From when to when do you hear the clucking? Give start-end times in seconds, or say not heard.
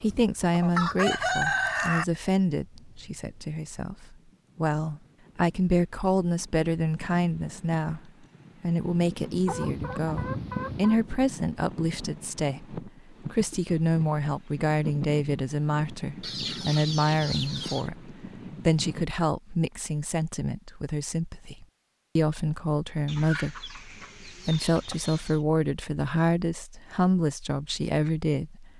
0.5-2.0, 9.4-11.0, 16.2-17.9, 23.1-25.4.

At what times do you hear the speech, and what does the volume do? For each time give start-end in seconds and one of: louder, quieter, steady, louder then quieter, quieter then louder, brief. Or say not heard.
0.0-28.7 steady.